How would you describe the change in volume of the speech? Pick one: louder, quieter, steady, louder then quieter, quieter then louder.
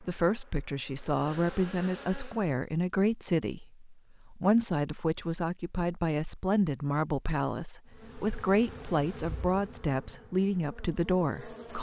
steady.